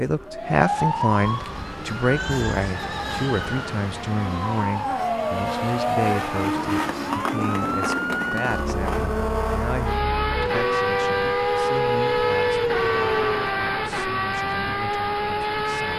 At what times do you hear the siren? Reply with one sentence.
You can hear the siren from 0.2 to 13.6 s.